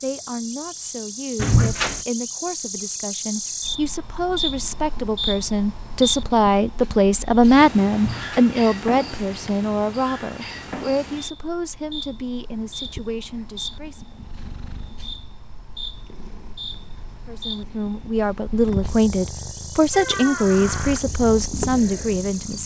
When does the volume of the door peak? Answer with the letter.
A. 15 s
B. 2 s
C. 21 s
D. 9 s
B.